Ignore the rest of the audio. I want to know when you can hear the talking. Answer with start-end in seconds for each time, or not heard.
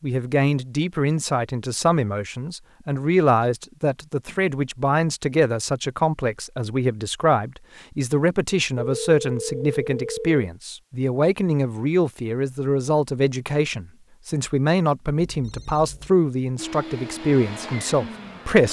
0.0-18.6.